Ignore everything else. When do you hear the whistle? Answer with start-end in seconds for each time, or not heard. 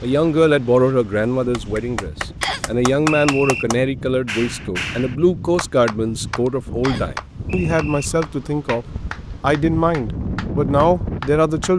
2.4-3.6, 6.8-8.1.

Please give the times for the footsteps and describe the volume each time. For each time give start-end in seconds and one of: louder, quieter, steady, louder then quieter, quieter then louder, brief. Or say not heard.
not heard.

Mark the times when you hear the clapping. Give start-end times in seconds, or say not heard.
1.5-11.7.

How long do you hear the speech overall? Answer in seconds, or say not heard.
12 s.